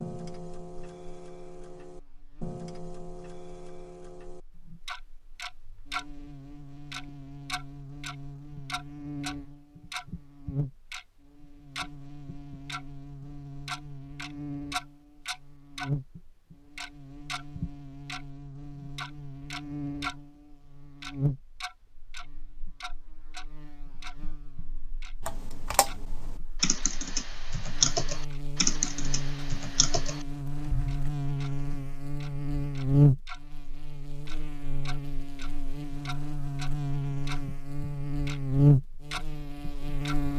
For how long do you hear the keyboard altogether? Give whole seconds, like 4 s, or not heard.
6 s.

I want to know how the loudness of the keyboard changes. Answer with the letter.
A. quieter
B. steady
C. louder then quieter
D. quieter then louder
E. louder
C.